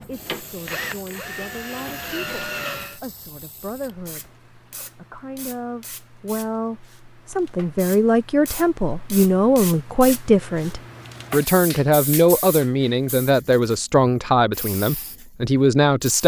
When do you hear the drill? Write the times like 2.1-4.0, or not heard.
0.0-3.0.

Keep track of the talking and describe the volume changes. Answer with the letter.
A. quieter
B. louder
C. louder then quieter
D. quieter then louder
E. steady
B.